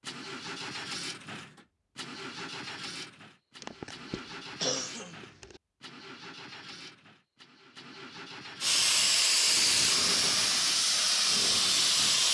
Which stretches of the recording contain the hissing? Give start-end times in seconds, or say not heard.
8.6-12.2.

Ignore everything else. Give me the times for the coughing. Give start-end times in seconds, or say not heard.
3.6-5.6.